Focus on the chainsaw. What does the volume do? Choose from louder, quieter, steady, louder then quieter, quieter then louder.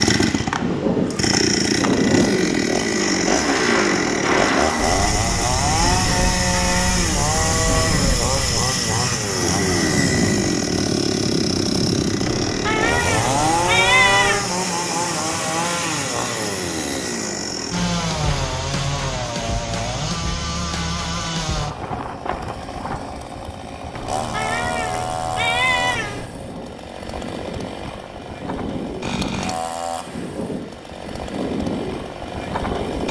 quieter.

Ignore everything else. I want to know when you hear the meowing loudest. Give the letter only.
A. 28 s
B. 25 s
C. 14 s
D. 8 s
C.